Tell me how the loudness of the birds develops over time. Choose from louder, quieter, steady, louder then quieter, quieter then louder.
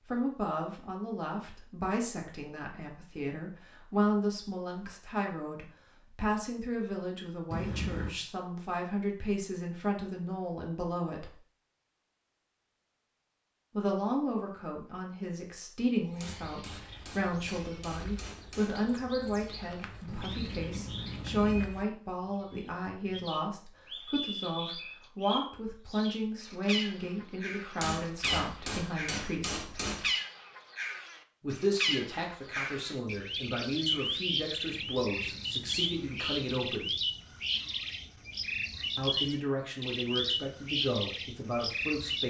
louder.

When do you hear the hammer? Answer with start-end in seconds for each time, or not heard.
16.2-18.8, 27.8-30.1.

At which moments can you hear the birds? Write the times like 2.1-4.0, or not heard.
16.1-42.2.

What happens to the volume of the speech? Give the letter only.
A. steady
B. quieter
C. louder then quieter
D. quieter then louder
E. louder
A.